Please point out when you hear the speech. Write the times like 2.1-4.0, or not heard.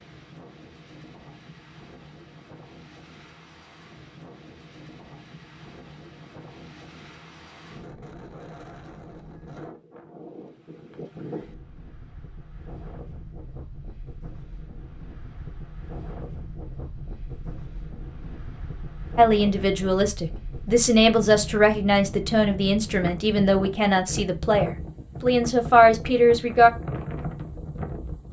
19.1-26.7.